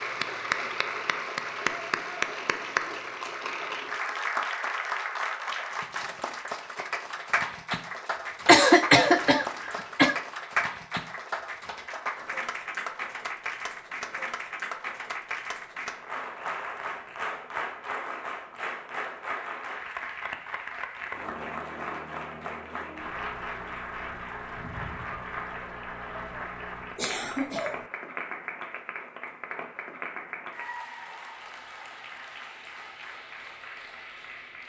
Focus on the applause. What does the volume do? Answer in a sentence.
The loudness of the applause goes down.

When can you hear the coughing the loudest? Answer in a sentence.
The loudest moment of the coughing is at 9 seconds.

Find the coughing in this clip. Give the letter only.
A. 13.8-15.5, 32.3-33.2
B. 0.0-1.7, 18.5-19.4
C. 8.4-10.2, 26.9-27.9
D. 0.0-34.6
C.